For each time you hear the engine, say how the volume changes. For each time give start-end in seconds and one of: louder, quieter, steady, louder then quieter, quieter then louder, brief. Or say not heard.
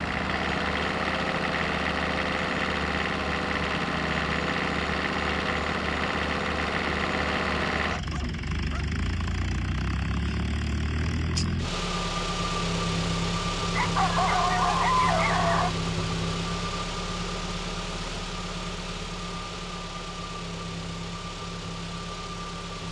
0.0-22.8 quieter.